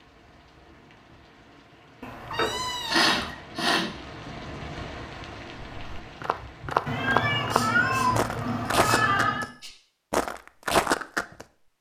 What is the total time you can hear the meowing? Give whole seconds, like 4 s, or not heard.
4 s.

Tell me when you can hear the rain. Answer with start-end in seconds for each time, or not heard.
0.0-6.8.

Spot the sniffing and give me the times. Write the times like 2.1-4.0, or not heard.
2.9-3.9, 7.5-9.7.